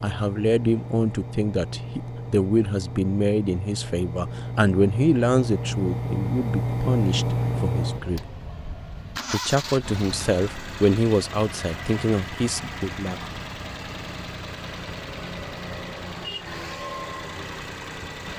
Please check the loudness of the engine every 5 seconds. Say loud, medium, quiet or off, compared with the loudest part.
medium, loud, medium, medium.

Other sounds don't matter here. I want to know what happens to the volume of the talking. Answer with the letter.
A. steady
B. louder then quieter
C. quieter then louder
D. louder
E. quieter
A.